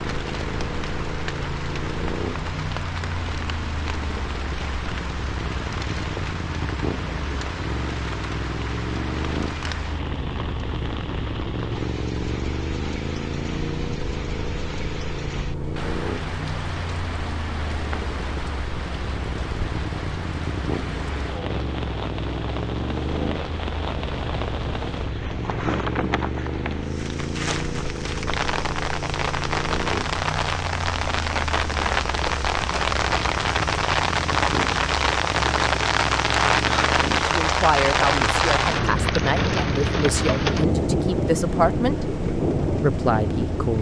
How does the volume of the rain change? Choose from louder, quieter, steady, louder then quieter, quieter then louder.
louder.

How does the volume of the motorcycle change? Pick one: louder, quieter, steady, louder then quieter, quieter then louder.
steady.